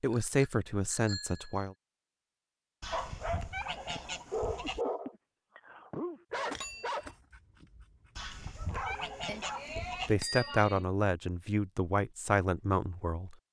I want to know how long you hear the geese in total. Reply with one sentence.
You can hear the geese for 4 seconds altogether.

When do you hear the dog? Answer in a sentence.
You can hear the dog from 2.9 to 9.7 s.